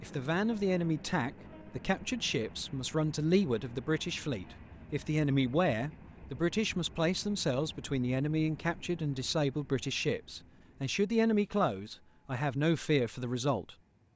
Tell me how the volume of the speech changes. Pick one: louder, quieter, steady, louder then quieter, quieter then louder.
steady.